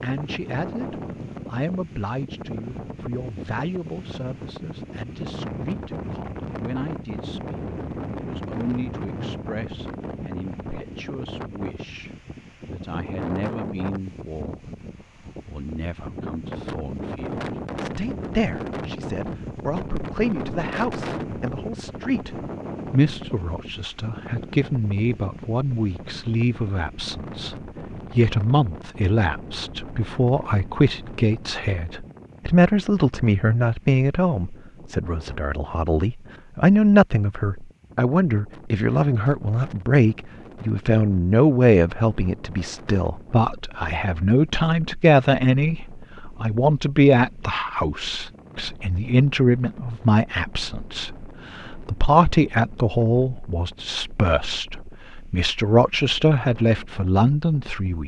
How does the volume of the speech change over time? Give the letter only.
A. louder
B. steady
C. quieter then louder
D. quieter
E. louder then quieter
A.